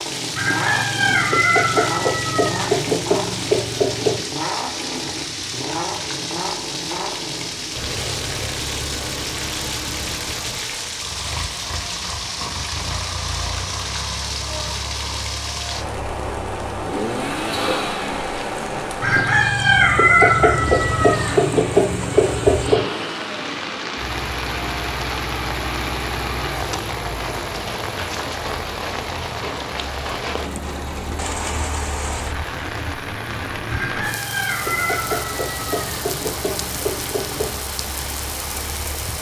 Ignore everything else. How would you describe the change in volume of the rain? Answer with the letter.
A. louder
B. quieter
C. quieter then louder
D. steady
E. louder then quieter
D.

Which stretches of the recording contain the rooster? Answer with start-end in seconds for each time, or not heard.
0.3-4.2, 19.0-22.9, 33.6-37.5.